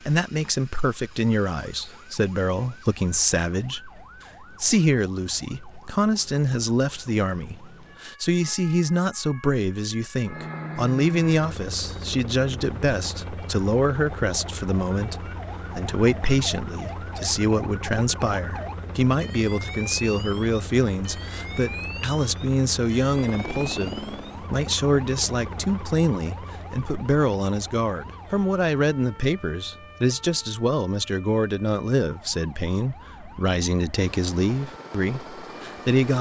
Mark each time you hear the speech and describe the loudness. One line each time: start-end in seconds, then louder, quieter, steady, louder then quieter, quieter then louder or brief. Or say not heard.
0.0-36.1 steady.